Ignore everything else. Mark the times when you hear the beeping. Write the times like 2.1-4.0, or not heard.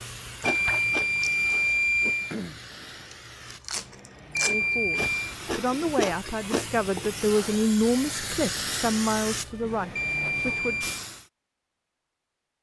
0.5-2.4, 4.3-5.2, 9.9-10.9.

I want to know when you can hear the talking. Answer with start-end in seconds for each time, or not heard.
4.4-10.9.